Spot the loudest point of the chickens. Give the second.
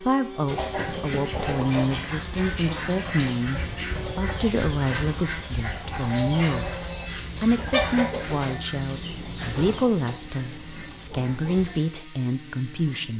8 s.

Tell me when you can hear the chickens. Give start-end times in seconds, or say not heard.
0.5-11.8.